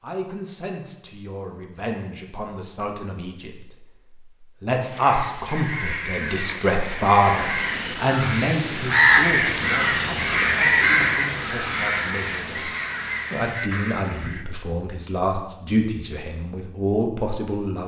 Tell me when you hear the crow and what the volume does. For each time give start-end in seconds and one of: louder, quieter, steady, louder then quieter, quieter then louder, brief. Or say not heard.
4.8-14.4 louder then quieter.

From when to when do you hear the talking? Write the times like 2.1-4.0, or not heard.
0.0-12.7, 13.3-17.8.